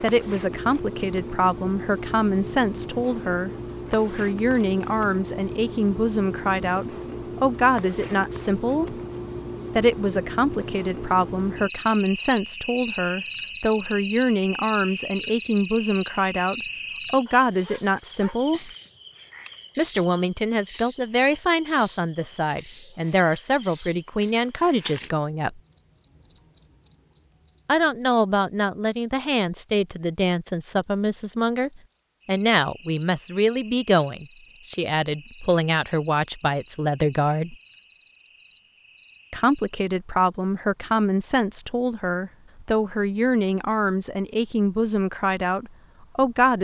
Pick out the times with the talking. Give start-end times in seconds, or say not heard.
0.0-8.9, 9.8-18.7, 19.8-25.6, 27.6-37.5, 39.3-46.5.